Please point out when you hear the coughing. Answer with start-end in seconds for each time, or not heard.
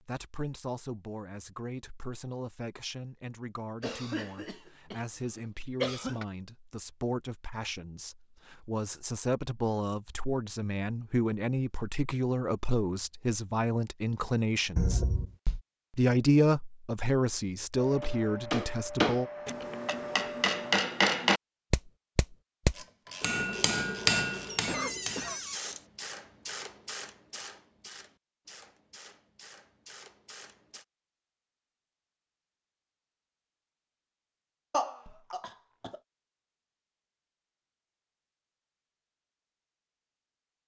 3.8-6.2, 24.6-25.4, 34.7-36.0.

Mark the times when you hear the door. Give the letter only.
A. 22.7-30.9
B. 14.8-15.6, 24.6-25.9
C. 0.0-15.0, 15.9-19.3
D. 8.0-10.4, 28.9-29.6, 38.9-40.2
B.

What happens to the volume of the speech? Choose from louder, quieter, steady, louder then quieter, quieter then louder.
louder.